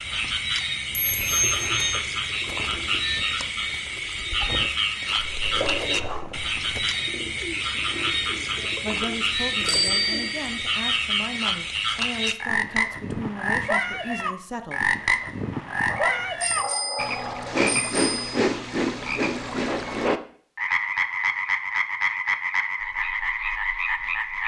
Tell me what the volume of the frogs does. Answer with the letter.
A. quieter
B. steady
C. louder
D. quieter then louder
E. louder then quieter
B.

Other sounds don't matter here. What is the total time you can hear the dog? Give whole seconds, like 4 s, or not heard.
3 s.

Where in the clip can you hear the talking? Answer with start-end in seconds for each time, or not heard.
8.8-14.8.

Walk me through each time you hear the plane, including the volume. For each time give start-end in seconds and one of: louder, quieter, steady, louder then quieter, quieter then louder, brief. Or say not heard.
not heard.